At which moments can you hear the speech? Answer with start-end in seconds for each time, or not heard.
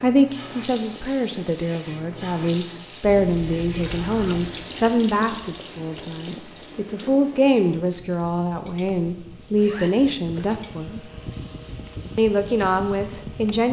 0.0-11.0, 12.2-13.6.